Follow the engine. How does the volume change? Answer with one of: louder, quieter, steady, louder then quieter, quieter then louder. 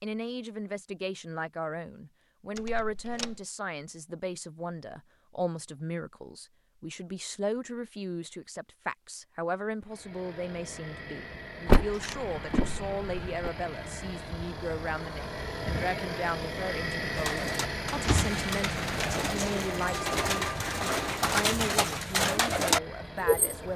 louder then quieter.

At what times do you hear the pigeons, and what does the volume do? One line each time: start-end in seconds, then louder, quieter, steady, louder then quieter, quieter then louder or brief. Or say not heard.
17.1-23.7 louder.